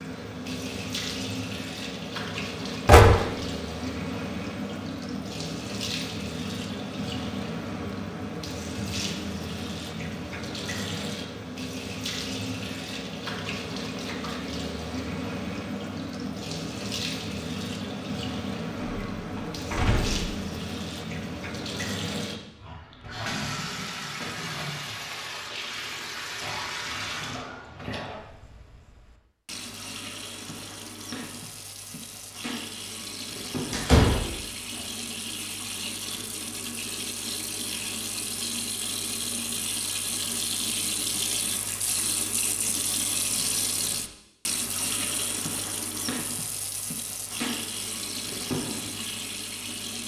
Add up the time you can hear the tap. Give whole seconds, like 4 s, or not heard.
50 s.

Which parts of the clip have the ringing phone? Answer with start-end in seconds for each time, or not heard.
not heard.